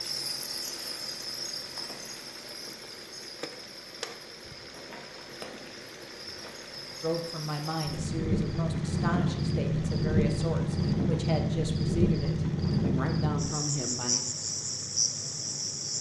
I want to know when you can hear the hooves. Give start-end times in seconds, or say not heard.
not heard.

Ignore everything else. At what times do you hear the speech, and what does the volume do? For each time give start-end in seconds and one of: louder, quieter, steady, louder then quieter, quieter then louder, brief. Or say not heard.
7.0-14.2 steady.